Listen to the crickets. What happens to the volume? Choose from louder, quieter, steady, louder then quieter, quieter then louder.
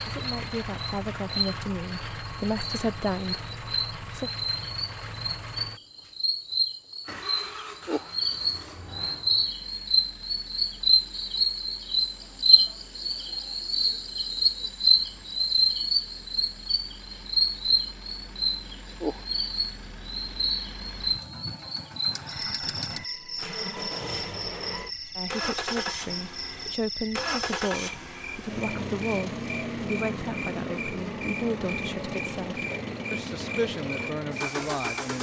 louder then quieter.